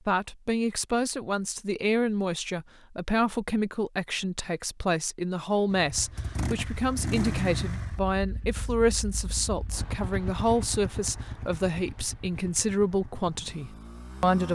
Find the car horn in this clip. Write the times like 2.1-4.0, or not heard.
not heard.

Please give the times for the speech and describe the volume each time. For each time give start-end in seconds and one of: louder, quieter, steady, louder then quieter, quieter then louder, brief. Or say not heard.
0.1-14.5 steady.